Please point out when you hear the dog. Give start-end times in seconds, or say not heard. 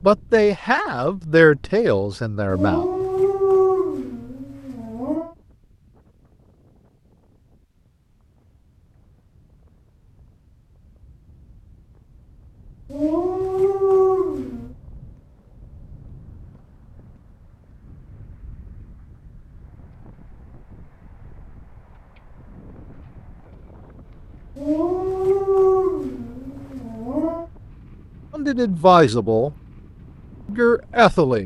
2.5-5.3, 12.9-14.7, 24.6-27.4.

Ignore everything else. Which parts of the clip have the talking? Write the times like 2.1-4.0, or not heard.
0.0-2.9, 28.3-29.5, 30.4-31.4.